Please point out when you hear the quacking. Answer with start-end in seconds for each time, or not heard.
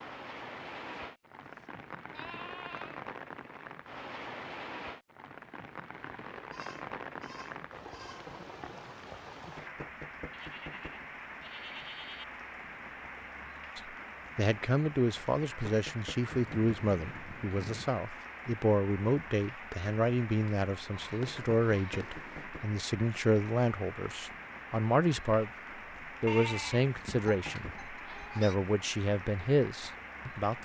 not heard.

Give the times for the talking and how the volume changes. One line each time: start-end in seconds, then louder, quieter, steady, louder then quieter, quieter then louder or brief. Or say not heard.
13.8-30.5 steady.